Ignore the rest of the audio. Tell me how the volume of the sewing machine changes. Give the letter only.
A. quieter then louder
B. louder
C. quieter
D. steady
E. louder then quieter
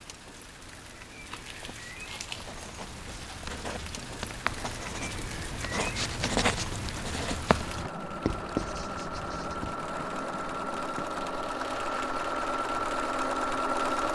B.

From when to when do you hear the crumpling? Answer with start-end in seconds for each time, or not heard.
1.3-2.5.